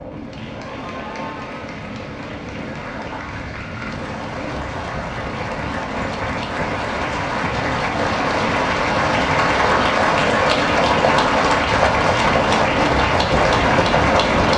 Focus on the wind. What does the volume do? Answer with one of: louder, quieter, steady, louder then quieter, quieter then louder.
louder.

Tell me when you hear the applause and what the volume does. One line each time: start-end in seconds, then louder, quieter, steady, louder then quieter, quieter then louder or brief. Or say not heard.
0.0-14.5 louder.